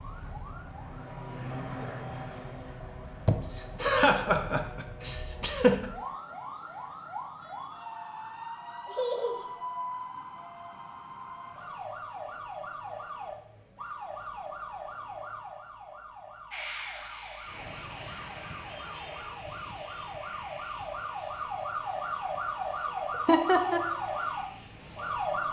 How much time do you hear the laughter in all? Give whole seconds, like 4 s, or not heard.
4 s.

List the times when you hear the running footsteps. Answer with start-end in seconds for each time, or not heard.
not heard.